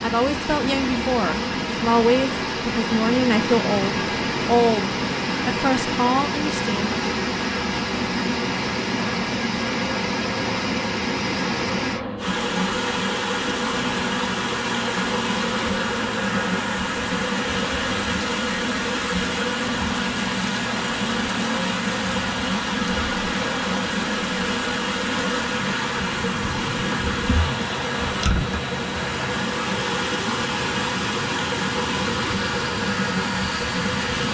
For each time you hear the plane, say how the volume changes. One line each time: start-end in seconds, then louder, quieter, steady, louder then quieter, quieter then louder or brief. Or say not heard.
0.0-34.2 steady.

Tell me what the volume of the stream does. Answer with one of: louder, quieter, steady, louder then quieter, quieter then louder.
steady.